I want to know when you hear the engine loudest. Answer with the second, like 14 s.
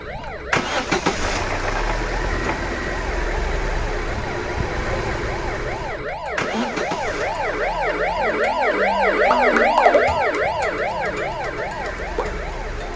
1 s.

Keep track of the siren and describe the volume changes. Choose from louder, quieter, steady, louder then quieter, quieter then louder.
louder then quieter.